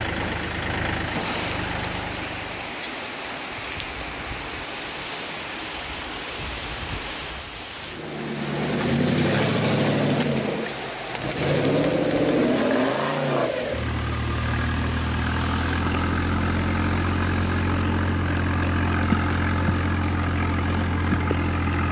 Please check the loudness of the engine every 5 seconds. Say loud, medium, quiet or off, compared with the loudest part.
medium, loud, loud, loud, loud.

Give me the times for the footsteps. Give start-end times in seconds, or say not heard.
not heard.